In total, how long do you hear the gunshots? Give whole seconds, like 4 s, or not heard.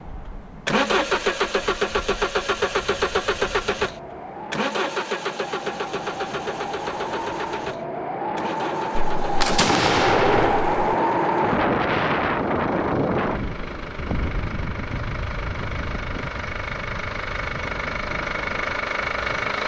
2 s.